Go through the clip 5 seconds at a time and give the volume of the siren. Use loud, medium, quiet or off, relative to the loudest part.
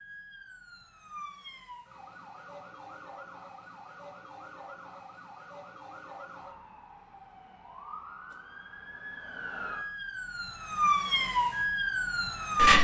quiet, quiet, loud.